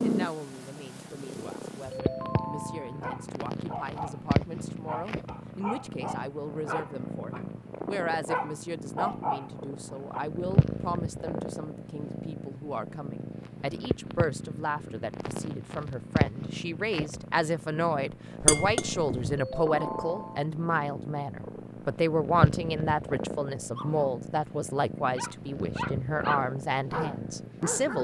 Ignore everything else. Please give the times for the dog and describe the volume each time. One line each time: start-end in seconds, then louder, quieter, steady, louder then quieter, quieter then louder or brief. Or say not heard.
3.0-4.2 brief
4.8-7.5 brief
8.2-10.2 brief
23.8-27.9 louder.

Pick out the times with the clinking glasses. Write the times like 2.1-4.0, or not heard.
18.4-19.4.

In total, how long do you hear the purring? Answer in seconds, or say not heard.
28 s.